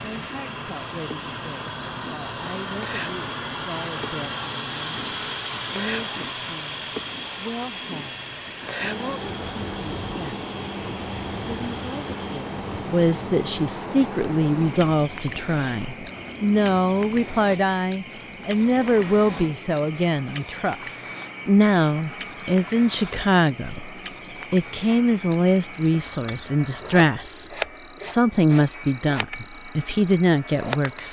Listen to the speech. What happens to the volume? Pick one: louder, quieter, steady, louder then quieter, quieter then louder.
louder.